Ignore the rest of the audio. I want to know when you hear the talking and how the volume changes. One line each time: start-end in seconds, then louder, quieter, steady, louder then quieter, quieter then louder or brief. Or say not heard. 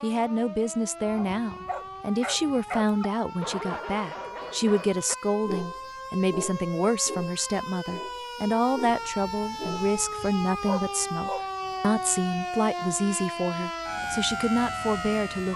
0.0-15.5 steady.